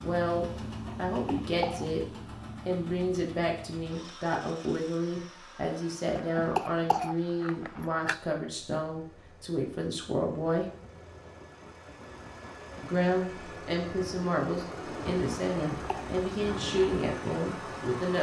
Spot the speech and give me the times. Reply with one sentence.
You can hear the speech from 0.0 to 2.0 s, from 2.6 to 10.7 s and from 12.8 to 18.1 s.